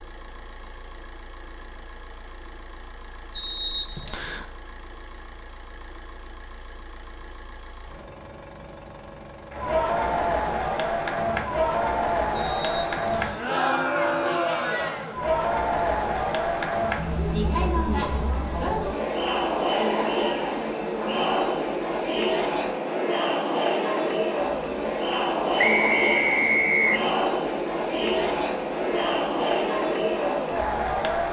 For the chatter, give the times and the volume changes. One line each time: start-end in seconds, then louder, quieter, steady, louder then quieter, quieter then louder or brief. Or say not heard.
9.5-31.2 steady.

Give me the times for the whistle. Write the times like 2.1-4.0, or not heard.
3.3-4.5, 12.3-13.4, 25.6-27.1.